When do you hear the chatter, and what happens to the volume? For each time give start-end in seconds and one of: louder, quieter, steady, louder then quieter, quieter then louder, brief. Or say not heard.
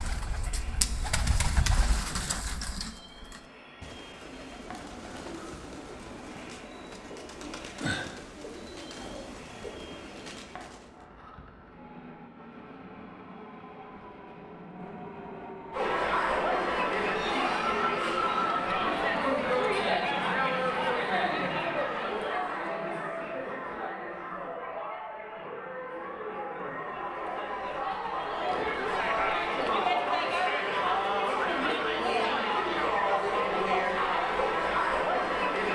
15.7-35.7 quieter then louder.